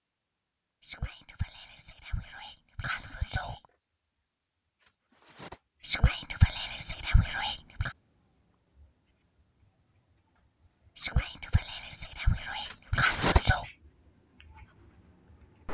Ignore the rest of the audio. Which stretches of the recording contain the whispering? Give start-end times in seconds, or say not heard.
0.8-3.6, 5.8-7.9, 10.9-13.7.